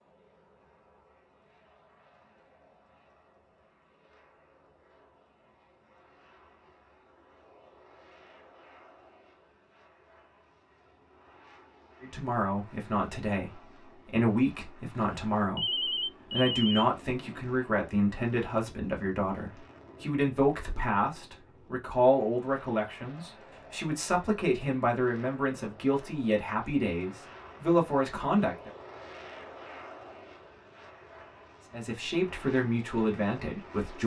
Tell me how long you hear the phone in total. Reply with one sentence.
The phone can be heard for 2 seconds in total.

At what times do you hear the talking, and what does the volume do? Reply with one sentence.
You can hear the talking from 12.0 to 28.7 s, at a steady volume; and briefly from 31.7 to 34.0 s.